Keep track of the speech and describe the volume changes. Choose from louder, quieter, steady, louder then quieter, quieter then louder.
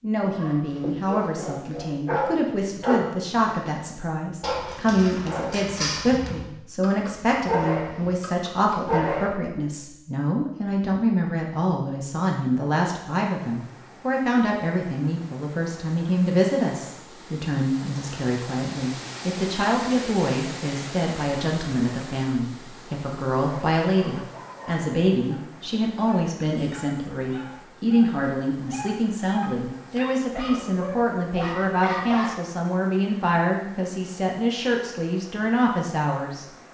steady.